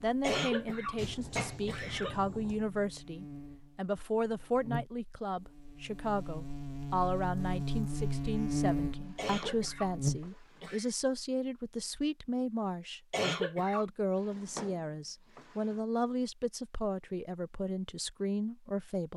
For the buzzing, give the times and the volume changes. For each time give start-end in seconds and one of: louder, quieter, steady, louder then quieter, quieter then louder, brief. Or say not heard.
0.0-10.3 louder.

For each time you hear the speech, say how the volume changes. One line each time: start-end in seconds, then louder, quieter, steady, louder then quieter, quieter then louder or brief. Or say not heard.
0.0-19.1 steady.